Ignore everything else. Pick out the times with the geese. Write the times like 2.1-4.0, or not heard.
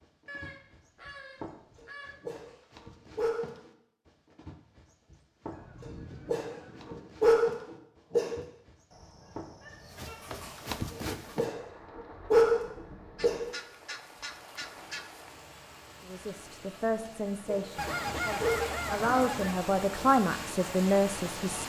0.2-2.2, 5.5-7.1, 8.9-10.8, 13.2-15.1, 17.8-19.6.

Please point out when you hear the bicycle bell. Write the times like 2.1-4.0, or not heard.
not heard.